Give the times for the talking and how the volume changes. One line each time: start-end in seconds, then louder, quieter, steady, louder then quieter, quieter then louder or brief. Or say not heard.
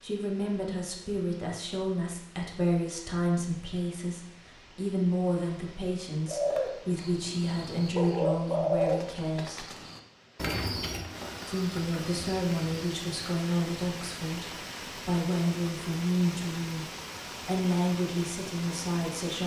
0.0-9.7 steady
11.4-19.4 steady.